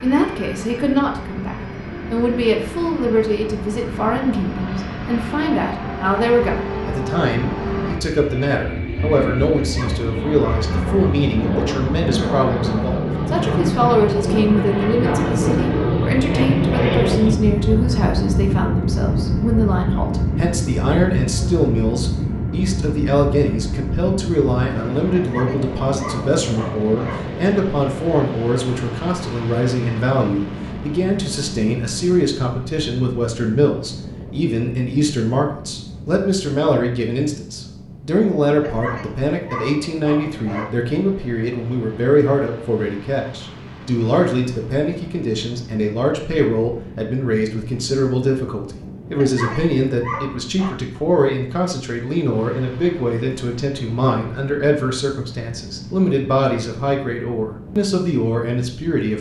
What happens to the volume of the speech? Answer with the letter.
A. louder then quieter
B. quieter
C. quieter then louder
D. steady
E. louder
D.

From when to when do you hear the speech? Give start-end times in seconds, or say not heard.
0.0-59.1.